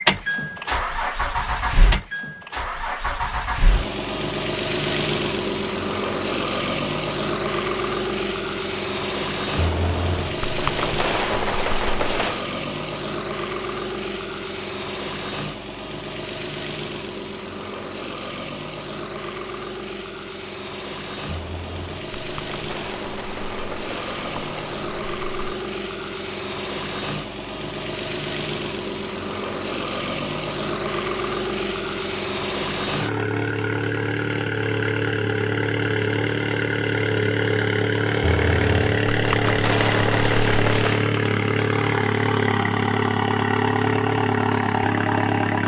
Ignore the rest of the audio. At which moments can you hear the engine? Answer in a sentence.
You can hear the engine from 0.0 to 45.6 s.